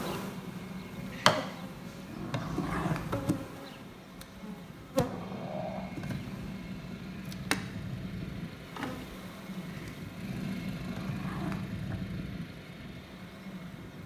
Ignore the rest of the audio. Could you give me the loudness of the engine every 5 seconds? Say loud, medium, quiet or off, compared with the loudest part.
medium, loud, loud.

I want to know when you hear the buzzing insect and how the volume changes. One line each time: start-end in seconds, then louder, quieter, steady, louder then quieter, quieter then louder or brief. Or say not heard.
0.0-14.0 quieter.